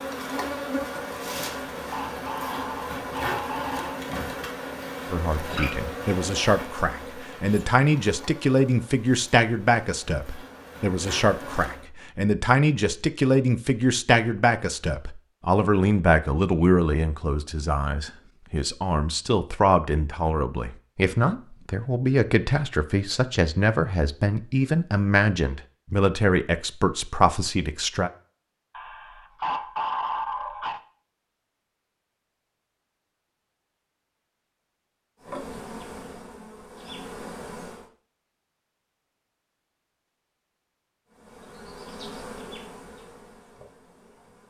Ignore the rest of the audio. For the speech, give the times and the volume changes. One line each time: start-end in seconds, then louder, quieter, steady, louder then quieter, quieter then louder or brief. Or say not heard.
5.1-28.1 steady.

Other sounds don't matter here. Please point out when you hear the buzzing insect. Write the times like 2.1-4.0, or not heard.
0.0-11.8, 35.2-37.9, 41.0-44.4.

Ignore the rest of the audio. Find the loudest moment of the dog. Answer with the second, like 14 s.
30 s.